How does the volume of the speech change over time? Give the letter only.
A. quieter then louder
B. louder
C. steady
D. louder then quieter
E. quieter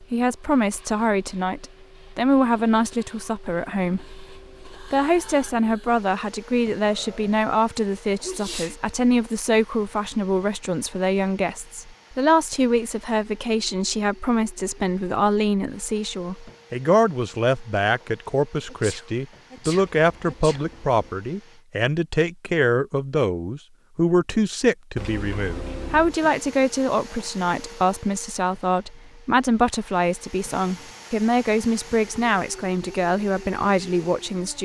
C.